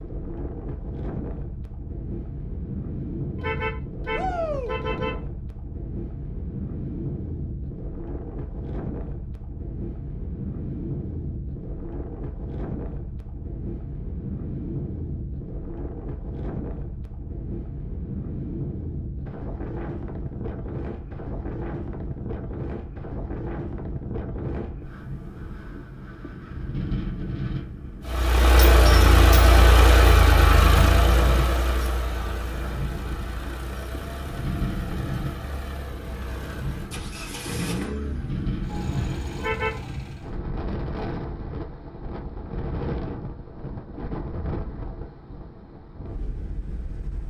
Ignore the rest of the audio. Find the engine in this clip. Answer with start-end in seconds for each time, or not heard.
28.1-40.4.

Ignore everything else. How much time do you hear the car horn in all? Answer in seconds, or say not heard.
2 s.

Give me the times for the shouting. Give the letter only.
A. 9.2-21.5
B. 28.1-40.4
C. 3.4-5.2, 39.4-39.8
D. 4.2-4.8
D.